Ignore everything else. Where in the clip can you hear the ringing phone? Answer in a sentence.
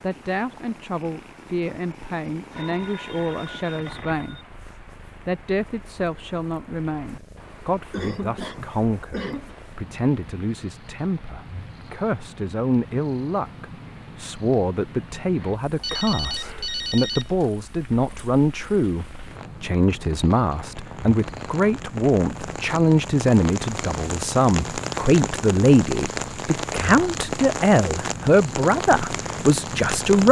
You can hear the ringing phone from 2.5 to 4.5 s and from 15.8 to 17.5 s.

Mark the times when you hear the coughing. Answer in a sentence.
You can hear the coughing from 7.9 to 9.6 s.